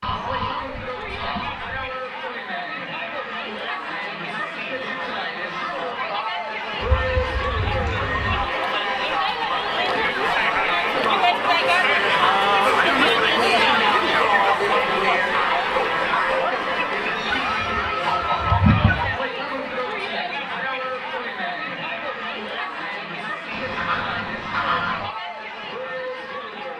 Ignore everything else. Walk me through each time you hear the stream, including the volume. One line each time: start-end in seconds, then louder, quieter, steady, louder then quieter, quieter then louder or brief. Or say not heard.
not heard.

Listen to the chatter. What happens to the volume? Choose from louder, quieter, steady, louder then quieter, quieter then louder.
louder then quieter.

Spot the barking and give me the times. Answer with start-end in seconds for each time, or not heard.
not heard.